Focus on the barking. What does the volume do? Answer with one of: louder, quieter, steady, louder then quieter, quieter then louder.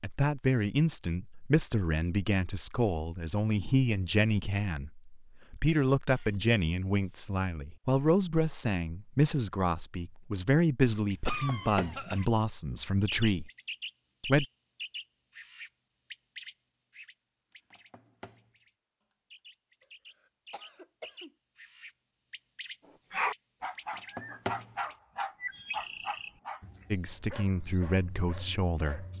quieter.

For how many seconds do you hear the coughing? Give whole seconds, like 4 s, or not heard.
4 s.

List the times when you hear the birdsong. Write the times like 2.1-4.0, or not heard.
11.1-12.2, 13.1-18.7, 19.3-29.1.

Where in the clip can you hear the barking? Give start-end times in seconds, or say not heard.
22.9-29.1.